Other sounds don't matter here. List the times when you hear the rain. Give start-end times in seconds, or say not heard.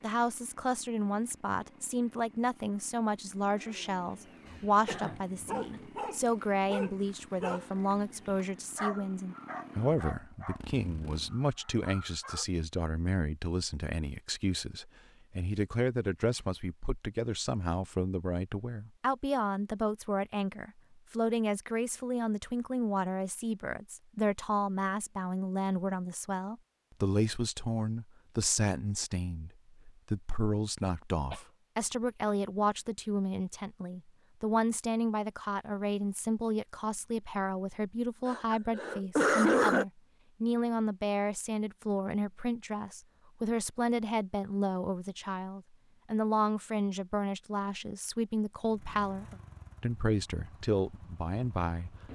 not heard.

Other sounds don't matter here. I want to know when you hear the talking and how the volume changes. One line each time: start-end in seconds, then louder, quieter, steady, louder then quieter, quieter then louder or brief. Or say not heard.
0.0-52.0 steady.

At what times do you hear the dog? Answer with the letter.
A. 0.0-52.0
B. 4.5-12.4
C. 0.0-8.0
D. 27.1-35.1
B.